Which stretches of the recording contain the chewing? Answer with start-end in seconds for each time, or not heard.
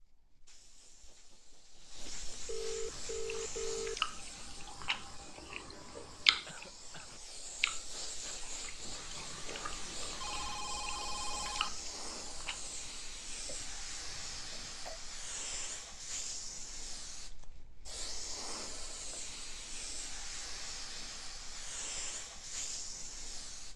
2.9-12.8.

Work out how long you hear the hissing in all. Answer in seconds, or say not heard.
24 s.